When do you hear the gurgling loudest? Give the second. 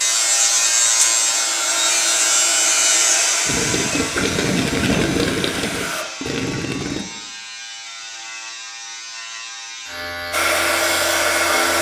5 s.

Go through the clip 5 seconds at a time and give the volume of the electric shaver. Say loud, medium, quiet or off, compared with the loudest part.
loud, quiet, medium.